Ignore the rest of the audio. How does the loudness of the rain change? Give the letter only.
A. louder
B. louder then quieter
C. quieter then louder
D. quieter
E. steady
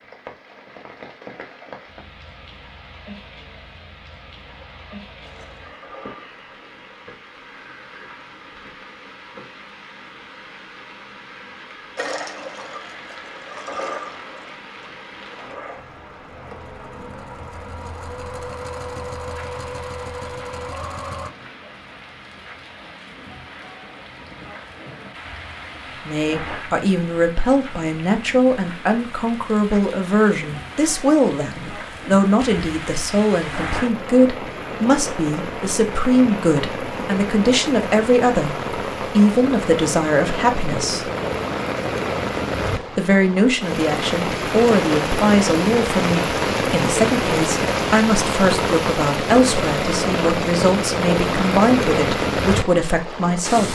A.